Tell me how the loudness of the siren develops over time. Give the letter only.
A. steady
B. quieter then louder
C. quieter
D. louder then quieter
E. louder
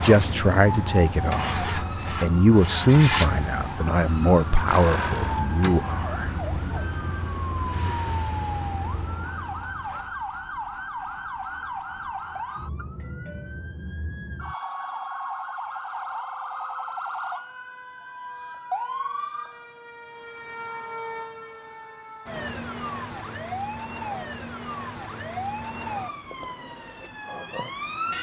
A.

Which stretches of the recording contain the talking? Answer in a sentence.
You can hear the talking from 0.0 to 6.3 s.